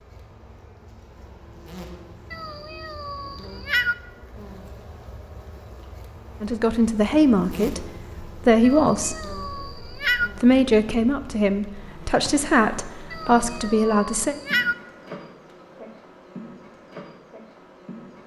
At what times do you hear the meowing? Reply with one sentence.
The meowing can be heard from 2.3 to 4.0 s, from 8.6 to 10.3 s and from 13.1 to 14.8 s.